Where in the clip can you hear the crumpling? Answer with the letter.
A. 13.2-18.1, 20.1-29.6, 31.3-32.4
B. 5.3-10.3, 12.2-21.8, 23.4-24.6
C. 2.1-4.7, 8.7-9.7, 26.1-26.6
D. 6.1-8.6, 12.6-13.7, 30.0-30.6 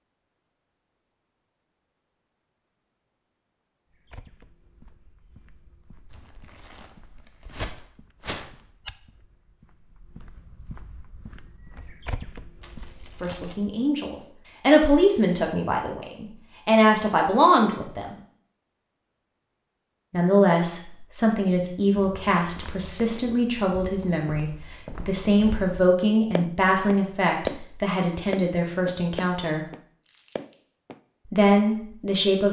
D.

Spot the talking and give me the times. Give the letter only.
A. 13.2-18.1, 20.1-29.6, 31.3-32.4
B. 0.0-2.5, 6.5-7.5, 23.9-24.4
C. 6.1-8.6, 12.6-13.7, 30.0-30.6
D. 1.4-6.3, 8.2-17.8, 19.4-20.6
A.